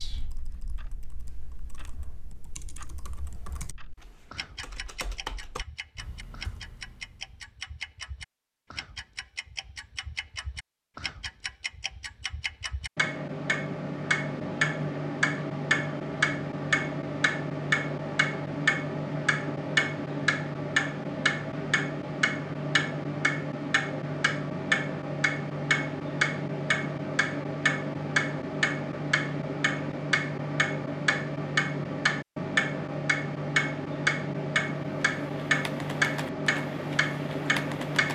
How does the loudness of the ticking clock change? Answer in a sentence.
The volume of the ticking clock goes up.